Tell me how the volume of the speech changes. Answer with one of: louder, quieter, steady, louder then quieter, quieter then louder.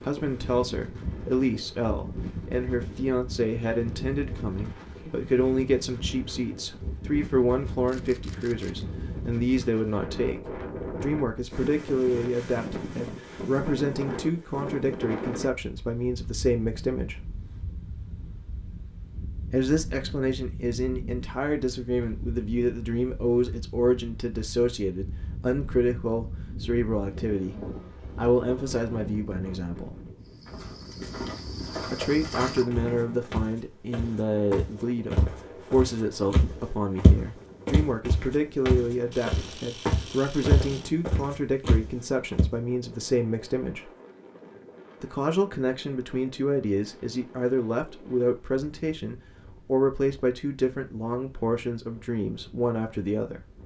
steady.